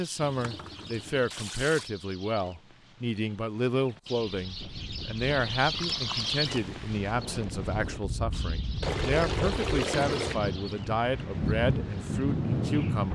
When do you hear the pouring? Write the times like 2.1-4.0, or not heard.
0.2-1.9, 5.7-6.3, 8.8-10.4.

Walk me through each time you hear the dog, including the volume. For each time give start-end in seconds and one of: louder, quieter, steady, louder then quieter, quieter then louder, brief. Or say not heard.
not heard.